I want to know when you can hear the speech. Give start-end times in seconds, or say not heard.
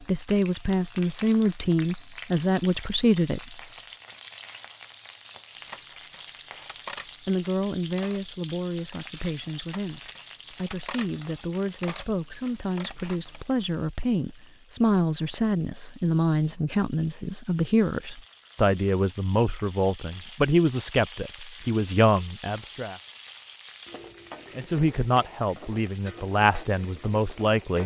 0.0-3.6, 7.2-22.9, 24.6-27.8.